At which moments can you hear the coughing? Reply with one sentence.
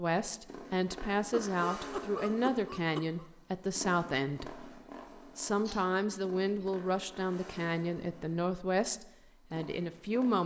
You can hear the coughing from 1.3 to 3.2 s and from 5.6 to 6.8 s.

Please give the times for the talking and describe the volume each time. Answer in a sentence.
The talking can be heard from 0.0 to 10.4 s, at a steady volume.